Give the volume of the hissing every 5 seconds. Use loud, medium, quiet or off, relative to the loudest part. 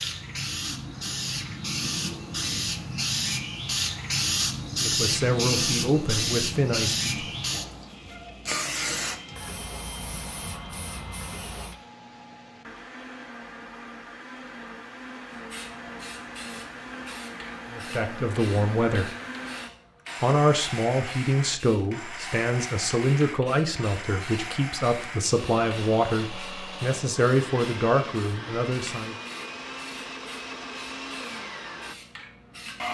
loud, loud, medium, quiet, quiet, quiet, quiet.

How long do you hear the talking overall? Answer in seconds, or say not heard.
13 s.